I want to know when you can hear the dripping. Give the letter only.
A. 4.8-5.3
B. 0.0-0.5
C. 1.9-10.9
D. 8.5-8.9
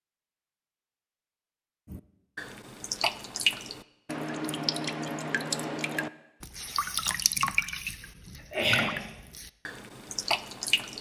C.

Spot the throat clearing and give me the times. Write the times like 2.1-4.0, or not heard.
8.5-8.9.